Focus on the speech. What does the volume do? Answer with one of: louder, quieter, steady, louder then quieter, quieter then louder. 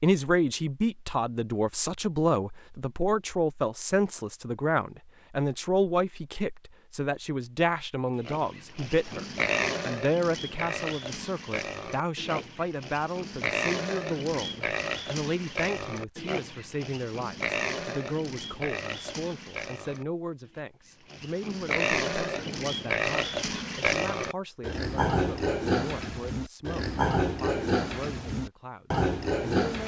quieter.